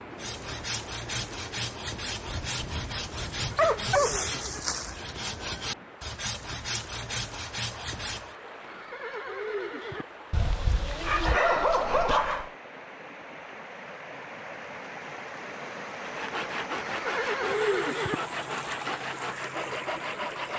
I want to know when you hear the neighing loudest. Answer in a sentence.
The loudest moment of the neighing is at 18 seconds.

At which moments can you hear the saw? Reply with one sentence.
The saw can be heard from 0.1 to 8.3 s and from 16.0 to 20.5 s.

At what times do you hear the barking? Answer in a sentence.
You can hear the barking from 2.2 to 4.2 s and from 10.3 to 12.5 s.